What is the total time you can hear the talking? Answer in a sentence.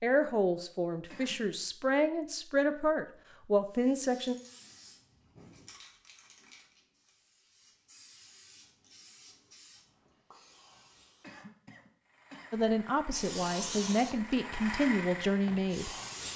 The talking can be heard for 8 seconds in total.